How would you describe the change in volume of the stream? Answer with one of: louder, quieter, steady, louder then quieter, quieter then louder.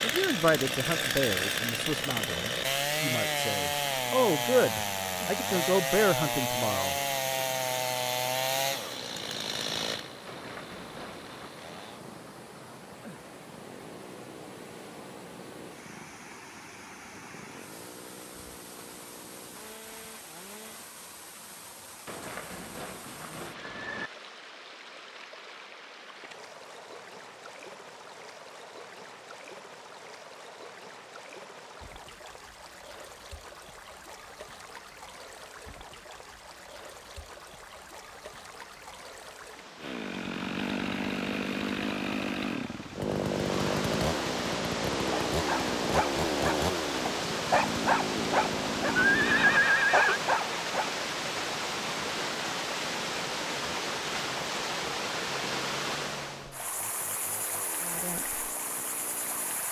louder.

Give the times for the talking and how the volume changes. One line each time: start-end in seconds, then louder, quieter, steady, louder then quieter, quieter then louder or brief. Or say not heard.
0.0-7.0 quieter then louder
57.8-58.4 brief.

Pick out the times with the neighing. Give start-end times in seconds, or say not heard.
10.2-11.6, 22.1-24.1, 49.0-50.2.